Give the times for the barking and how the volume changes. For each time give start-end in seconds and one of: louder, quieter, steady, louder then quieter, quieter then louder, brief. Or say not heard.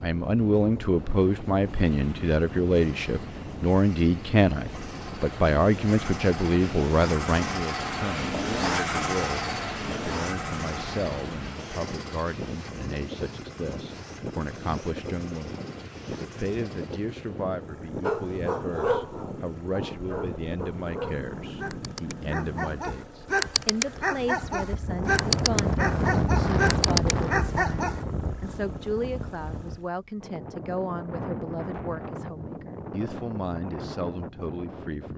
18.0-28.1 quieter then louder.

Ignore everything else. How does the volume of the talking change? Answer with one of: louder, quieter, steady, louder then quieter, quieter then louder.
quieter.